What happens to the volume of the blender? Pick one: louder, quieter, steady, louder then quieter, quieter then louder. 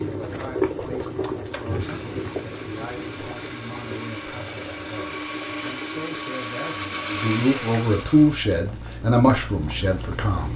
louder.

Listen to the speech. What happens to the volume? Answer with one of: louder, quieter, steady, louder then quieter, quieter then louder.
louder.